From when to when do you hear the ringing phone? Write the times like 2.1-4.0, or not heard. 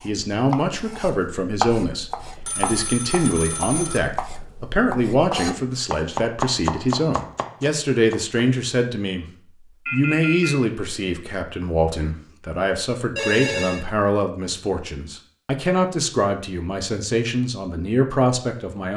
2.5-4.0, 9.8-10.6, 13.2-13.8.